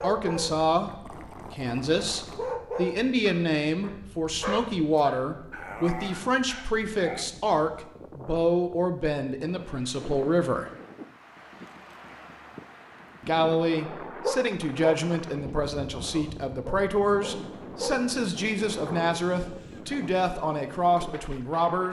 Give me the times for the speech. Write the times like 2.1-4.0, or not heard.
0.0-0.9, 1.5-10.7, 13.2-21.8.